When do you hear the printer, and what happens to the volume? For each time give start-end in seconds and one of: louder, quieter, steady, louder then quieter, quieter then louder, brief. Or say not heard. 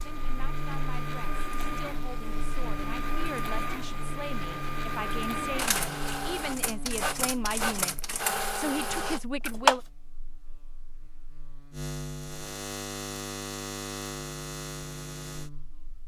0.0-9.8 louder.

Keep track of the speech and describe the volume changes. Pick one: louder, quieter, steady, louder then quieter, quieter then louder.
louder.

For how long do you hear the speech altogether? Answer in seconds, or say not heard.
10 s.